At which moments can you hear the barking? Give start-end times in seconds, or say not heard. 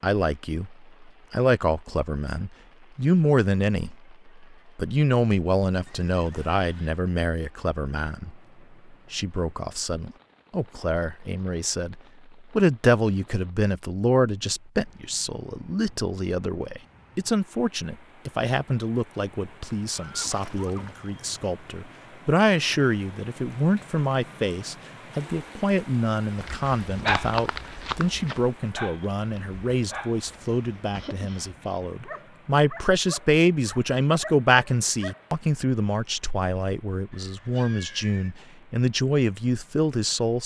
26.4-35.2.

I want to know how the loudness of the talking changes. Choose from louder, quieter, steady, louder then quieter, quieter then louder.
steady.